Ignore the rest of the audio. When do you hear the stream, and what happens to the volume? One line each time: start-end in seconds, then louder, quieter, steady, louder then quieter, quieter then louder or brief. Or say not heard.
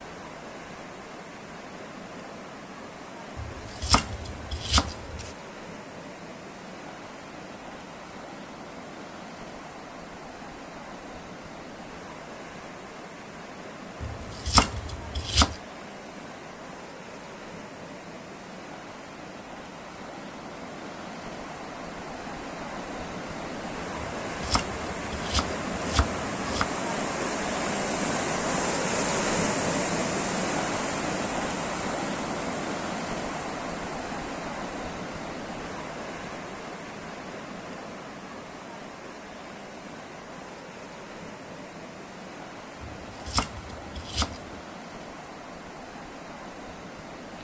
0.0-47.3 louder then quieter.